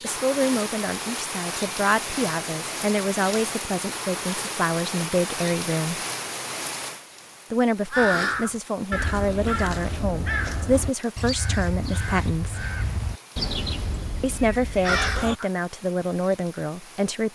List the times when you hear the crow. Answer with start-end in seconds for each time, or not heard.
7.9-15.5.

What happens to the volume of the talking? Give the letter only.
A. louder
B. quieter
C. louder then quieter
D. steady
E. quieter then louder
D.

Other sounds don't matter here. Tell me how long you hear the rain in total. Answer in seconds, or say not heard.
17 s.